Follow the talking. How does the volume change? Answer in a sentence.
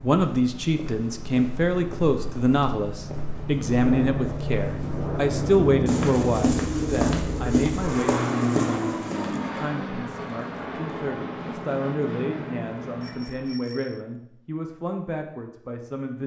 The loudness of the talking goes down.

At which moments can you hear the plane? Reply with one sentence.
You can hear the plane from 0.0 to 13.6 s.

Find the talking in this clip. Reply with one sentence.
The talking can be heard from 0.0 to 16.2 s.